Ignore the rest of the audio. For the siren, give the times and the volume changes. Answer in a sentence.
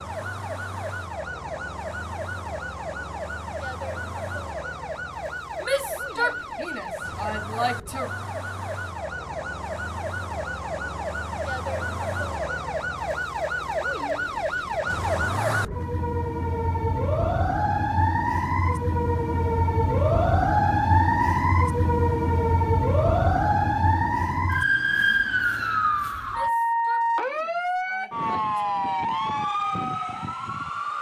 You can hear the siren from 0.0 to 30.9 s, getting louder.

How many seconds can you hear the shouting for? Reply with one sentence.
You can hear the shouting for 5 seconds altogether.